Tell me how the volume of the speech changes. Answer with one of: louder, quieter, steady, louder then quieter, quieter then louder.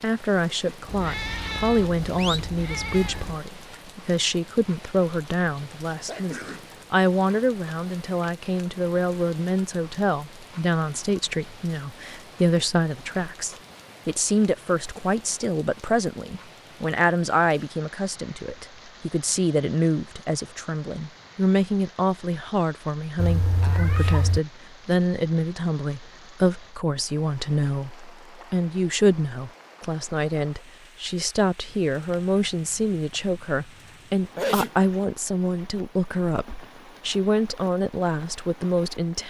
steady.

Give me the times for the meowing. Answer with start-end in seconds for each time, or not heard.
0.8-3.4, 23.1-24.4, 31.7-34.2.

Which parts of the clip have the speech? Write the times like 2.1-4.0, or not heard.
0.0-39.2.